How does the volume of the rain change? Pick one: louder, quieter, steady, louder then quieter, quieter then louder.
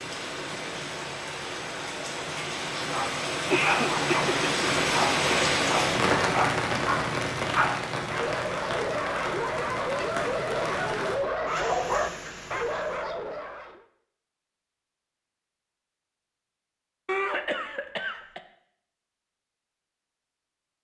louder then quieter.